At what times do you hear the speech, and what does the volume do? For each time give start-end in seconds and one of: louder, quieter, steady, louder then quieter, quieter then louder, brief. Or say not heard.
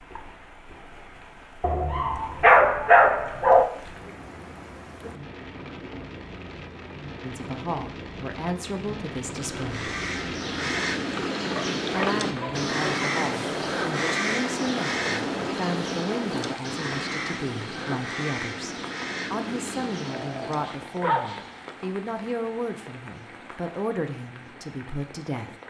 7.2-9.9 brief
11.9-25.5 steady.